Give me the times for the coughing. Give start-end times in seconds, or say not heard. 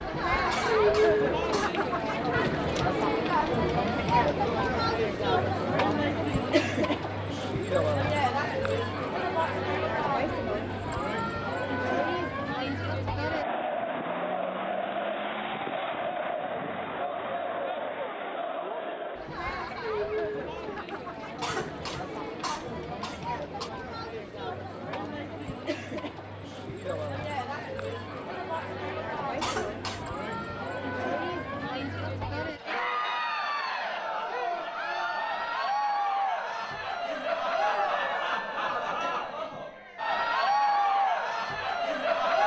0.5-1.8, 21.4-23.7, 29.4-30.1.